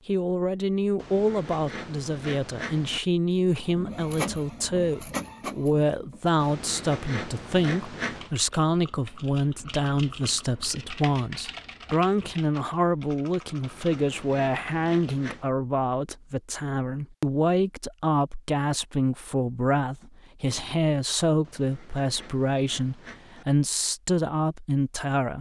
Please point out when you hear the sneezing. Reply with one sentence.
The sneezing can't be heard in this clip.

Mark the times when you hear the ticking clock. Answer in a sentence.
You can't hear the ticking clock here.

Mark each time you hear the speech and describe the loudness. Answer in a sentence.
The speech can be heard from 0.1 to 25.3 s, at a steady volume.